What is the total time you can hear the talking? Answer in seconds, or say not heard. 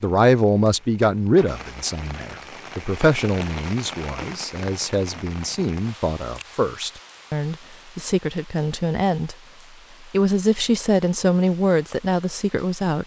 12 s.